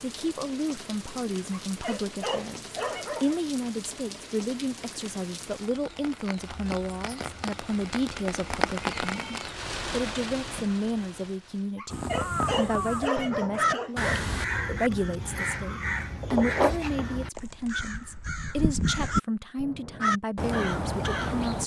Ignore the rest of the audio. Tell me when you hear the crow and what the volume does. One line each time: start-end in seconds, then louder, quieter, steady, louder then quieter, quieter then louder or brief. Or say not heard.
11.9-21.6 steady.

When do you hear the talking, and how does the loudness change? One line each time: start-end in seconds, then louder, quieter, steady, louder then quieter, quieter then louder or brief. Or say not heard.
0.0-21.6 steady.